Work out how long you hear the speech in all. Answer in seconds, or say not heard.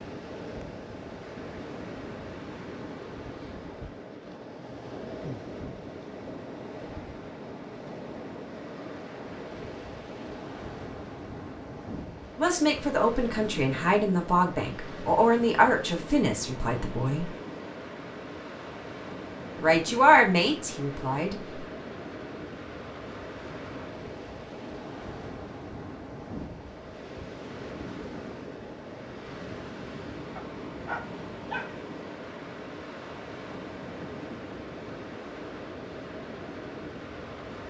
7 s.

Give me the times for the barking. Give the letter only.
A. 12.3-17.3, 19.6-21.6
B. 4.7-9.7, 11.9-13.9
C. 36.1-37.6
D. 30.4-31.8
D.